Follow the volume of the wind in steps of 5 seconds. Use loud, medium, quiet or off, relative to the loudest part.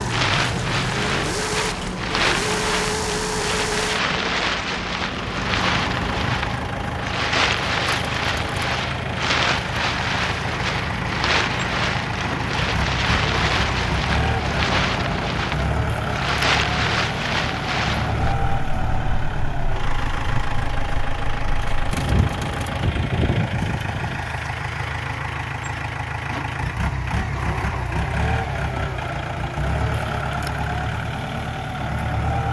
loud, loud, loud, loud, loud, off, off.